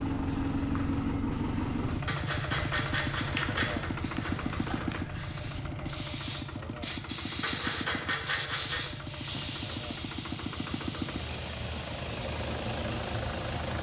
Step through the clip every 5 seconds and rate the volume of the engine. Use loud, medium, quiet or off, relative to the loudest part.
loud, medium, loud.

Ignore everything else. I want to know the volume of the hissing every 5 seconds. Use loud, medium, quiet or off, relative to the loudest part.
medium, loud, loud.